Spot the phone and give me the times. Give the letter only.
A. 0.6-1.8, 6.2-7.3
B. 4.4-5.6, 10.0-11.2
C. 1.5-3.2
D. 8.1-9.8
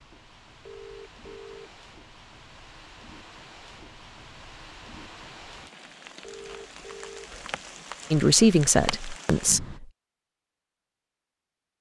A.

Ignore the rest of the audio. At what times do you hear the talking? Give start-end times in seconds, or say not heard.
8.1-9.8.